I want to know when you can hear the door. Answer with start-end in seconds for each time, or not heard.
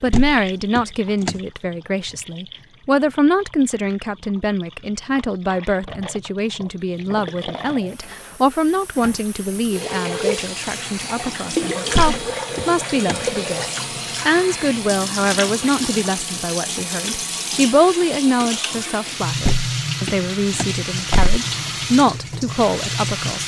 0.1-1.4, 11.9-13.2, 19.4-21.4.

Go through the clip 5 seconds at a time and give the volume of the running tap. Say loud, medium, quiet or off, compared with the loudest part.
quiet, medium, loud, loud, loud.